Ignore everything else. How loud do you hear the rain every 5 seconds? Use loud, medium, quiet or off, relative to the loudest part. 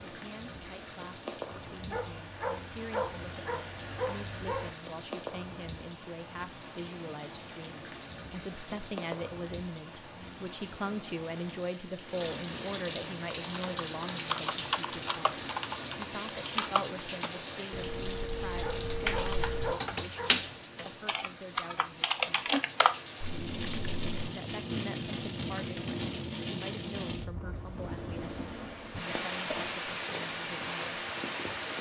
medium, medium, loud, loud, loud, loud, loud.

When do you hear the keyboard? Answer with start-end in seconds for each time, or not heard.
13.4-24.3.